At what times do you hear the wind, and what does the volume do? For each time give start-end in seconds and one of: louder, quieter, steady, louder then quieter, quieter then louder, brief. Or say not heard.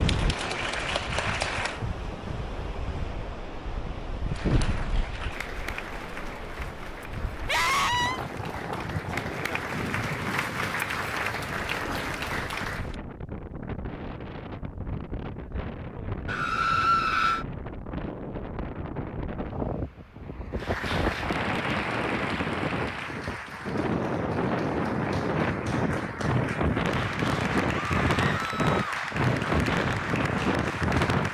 0.0-31.2 louder.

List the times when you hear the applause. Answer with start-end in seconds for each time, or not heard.
0.0-1.9, 4.2-12.9, 20.5-31.2.